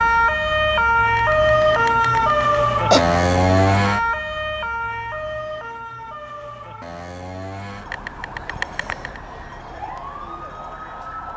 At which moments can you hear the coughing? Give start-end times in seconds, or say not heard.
1.1-3.0, 7.9-9.2.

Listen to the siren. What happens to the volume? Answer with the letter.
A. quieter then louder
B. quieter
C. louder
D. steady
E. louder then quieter
B.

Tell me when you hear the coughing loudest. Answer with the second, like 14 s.
3 s.